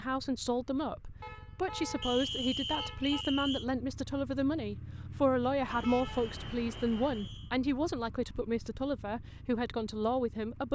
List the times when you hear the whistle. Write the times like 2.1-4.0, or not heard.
2.0-3.6, 5.7-7.5.